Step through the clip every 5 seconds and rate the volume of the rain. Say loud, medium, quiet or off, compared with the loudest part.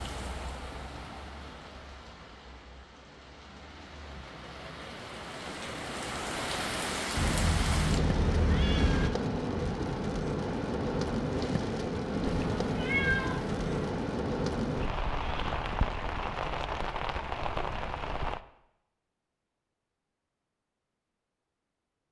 quiet, loud, loud, loud, off.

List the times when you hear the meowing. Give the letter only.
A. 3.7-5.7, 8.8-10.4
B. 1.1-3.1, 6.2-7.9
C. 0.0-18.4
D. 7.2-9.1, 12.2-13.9
D.